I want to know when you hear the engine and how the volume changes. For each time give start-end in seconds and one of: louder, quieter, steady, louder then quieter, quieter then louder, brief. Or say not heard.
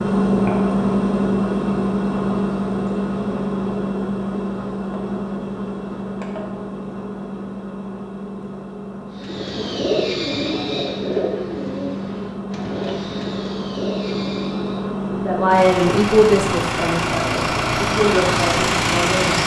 0.0-19.4 quieter then louder.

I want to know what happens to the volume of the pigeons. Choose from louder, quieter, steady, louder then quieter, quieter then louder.
quieter.